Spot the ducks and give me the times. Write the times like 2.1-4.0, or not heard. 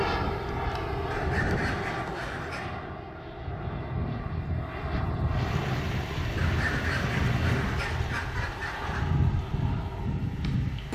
1.1-2.8, 6.3-9.1.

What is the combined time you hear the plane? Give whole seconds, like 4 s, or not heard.
11 s.